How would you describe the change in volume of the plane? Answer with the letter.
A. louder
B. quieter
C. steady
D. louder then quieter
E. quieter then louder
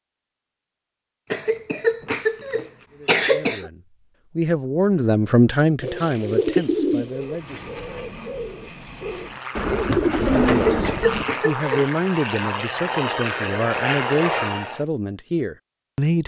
A.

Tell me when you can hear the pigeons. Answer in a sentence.
You can hear the pigeons from 5.8 to 11.2 s.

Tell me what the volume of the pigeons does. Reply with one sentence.
The loudness of the pigeons goes down, then up.